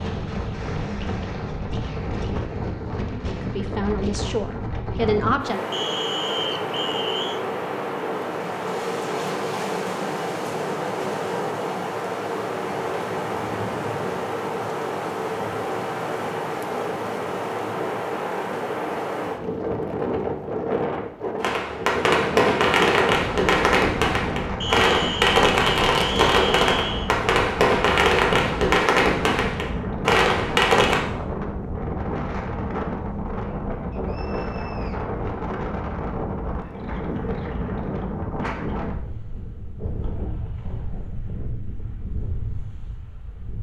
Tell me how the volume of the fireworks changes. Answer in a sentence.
The loudness of the fireworks stays about the same.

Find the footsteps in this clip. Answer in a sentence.
The footsteps can't be heard in this clip.